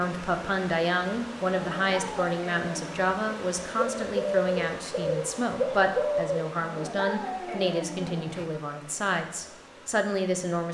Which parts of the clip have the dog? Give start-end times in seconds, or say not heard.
1.6-3.1, 6.5-8.5.